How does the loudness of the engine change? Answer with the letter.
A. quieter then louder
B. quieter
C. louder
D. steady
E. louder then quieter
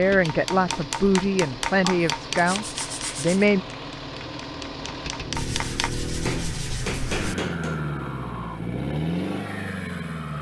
C.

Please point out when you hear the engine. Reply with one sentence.
The engine can be heard from 0.0 to 10.3 s.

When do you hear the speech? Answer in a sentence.
You can hear the speech from 0.0 to 3.6 s.